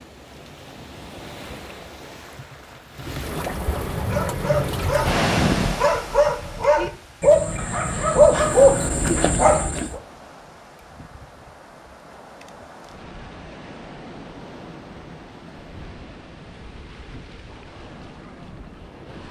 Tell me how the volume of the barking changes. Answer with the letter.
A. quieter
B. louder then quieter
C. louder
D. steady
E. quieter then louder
C.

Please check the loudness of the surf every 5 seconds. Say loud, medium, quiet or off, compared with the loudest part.
medium, loud, quiet, quiet.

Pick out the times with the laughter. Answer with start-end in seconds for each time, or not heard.
not heard.